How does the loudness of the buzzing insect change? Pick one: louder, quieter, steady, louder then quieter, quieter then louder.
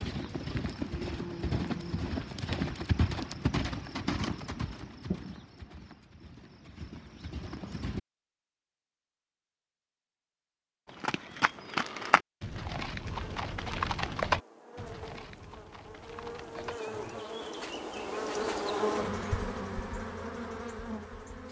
louder then quieter.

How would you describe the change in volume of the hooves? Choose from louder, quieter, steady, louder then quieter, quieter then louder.
quieter then louder.